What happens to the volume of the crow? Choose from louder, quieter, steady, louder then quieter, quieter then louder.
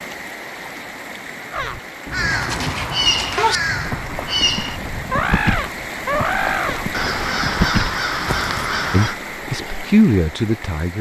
steady.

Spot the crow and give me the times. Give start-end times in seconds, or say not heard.
1.5-9.2.